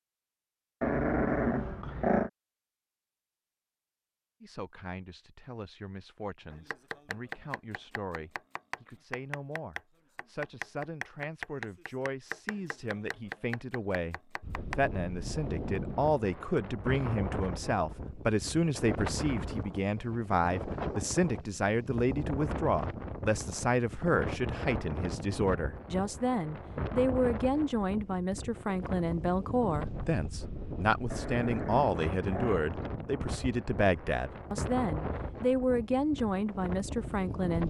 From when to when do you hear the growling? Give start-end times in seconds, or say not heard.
0.8-2.3, 31.1-32.5.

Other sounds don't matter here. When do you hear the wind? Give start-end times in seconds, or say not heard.
14.4-37.6.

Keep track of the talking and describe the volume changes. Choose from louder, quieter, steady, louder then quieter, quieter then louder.
louder.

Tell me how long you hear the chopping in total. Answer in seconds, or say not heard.
8 s.